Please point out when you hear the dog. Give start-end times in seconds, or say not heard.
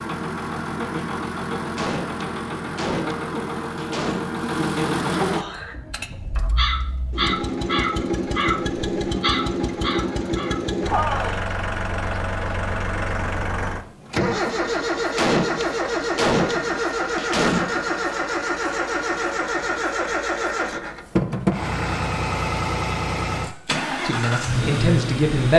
not heard.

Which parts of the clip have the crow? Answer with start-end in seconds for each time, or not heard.
5.2-11.4.